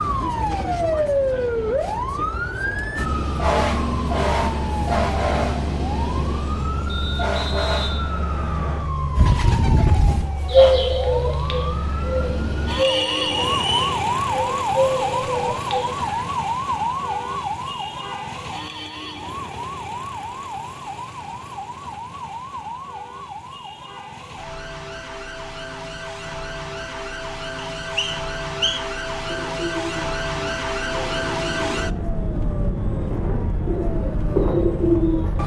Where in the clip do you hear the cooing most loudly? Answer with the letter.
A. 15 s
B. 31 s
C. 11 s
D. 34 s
C.